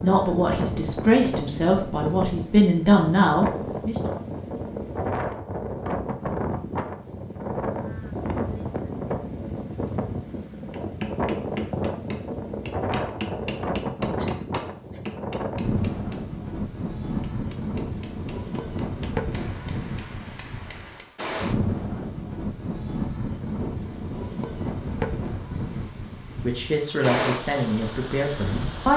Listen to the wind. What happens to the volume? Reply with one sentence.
The volume of the wind stays about the same.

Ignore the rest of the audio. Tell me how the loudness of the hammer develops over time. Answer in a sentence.
The volume of the hammer goes down.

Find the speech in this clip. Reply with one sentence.
You can hear the speech from 0.0 to 4.0 s and from 26.4 to 28.9 s.